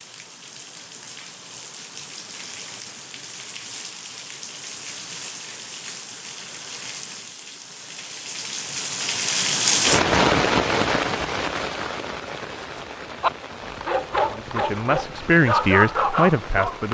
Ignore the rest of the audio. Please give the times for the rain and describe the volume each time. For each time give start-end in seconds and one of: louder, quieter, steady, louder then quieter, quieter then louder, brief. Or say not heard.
0.0-16.8 louder then quieter.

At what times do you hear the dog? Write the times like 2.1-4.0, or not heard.
12.9-16.8.